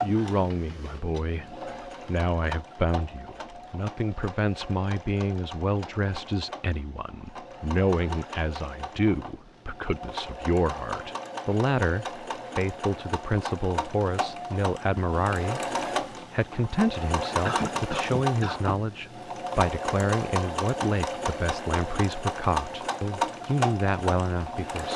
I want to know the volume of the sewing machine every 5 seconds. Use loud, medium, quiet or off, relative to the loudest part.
medium, medium, medium, loud, loud.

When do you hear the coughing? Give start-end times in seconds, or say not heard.
17.4-18.9.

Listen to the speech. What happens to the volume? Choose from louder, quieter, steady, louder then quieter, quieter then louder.
steady.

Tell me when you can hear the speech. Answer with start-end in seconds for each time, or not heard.
0.0-24.9.